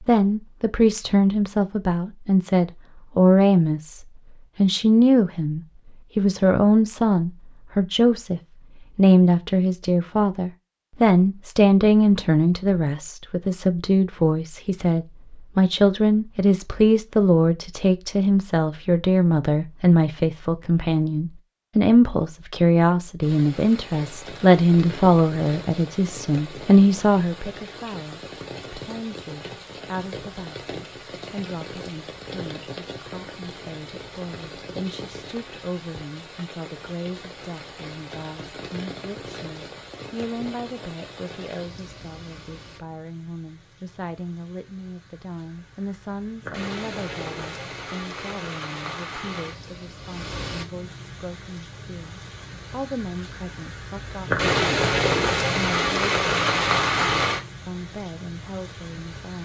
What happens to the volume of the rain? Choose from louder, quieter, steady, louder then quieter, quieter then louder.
louder.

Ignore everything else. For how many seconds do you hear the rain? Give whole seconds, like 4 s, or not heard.
36 s.